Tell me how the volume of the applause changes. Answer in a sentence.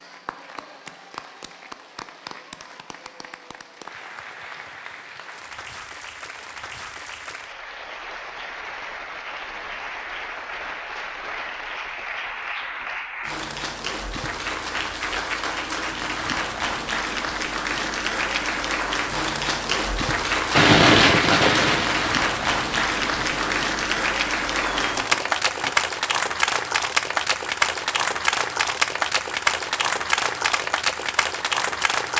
The loudness of the applause goes up.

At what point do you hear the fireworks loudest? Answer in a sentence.
The loudest moment of the fireworks is at 21 seconds.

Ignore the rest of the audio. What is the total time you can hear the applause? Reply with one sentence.
The applause can be heard for 32 seconds in total.